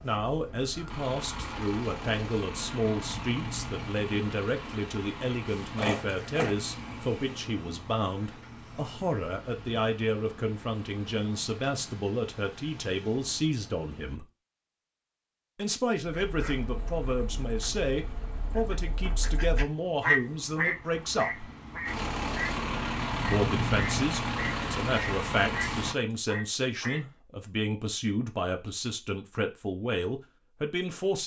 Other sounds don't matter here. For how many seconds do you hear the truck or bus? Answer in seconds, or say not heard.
24 s.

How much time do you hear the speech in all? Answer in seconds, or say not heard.
28 s.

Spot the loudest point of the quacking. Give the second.
20 s.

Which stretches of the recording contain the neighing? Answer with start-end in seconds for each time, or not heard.
5.8-6.5.